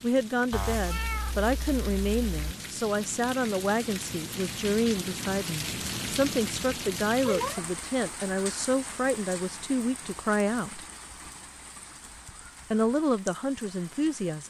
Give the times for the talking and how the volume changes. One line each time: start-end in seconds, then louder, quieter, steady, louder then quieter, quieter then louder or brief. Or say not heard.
0.0-10.8 steady
12.7-14.4 brief.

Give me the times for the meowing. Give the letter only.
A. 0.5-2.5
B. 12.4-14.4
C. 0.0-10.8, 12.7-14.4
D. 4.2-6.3
A.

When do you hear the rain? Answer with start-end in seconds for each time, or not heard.
0.0-14.4.